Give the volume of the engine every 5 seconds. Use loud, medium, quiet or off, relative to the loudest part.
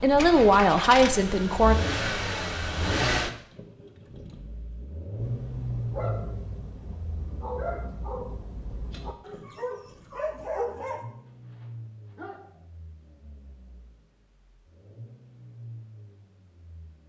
loud, medium, quiet, quiet.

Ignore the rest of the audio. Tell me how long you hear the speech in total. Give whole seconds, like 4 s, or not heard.
2 s.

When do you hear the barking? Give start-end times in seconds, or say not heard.
5.2-12.7.